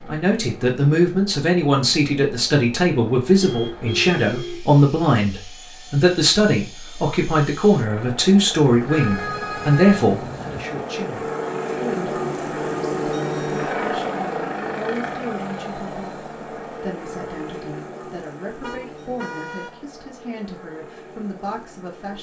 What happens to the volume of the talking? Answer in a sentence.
The loudness of the talking goes down.